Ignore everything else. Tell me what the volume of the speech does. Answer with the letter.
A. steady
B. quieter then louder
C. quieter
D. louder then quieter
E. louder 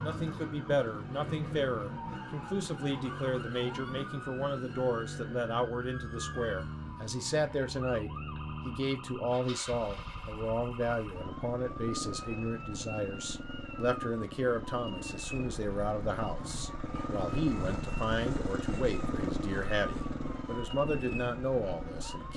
A.